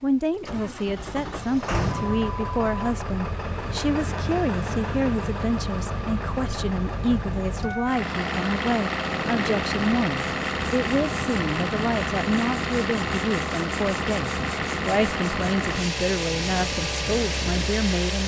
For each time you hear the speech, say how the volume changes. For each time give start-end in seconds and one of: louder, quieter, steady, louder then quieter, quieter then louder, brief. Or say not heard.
0.0-18.2 steady.